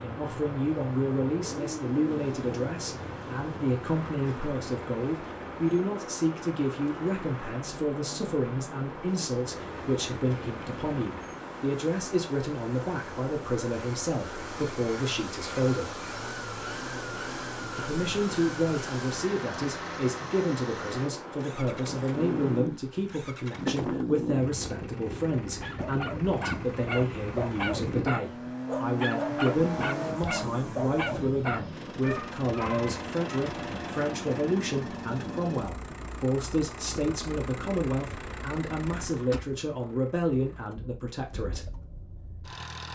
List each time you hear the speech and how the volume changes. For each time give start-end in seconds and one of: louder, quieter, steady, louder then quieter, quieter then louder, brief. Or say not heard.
0.0-15.9 steady
17.8-41.6 steady.